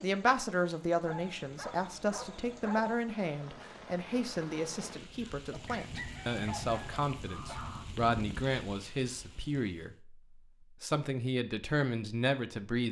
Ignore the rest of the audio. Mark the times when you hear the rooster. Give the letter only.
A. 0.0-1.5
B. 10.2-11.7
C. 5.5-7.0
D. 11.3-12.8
C.